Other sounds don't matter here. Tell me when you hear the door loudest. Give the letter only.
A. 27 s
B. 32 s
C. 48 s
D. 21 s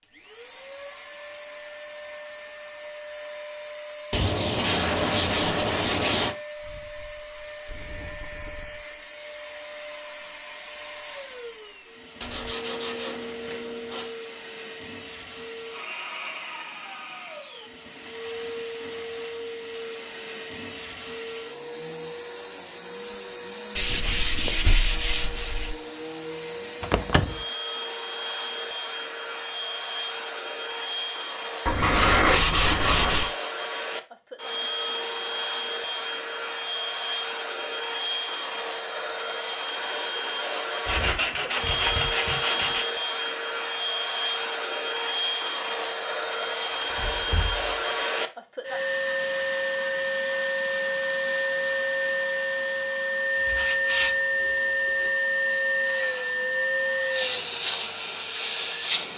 A.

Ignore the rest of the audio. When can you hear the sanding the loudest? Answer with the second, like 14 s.
32 s.